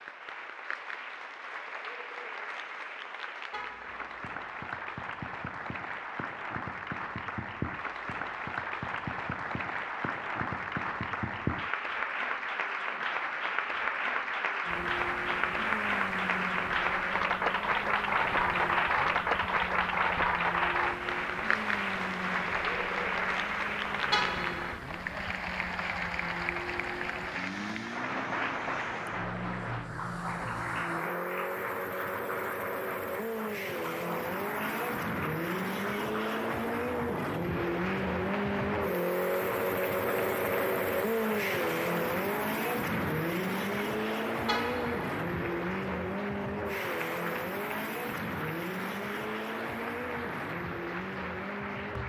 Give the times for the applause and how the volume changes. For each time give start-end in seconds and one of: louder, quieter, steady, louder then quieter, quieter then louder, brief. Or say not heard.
0.0-52.0 louder then quieter.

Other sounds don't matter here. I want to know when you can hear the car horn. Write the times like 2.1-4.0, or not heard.
3.5-4.2, 24.1-24.8, 44.5-45.0.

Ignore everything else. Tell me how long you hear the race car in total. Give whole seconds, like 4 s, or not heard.
37 s.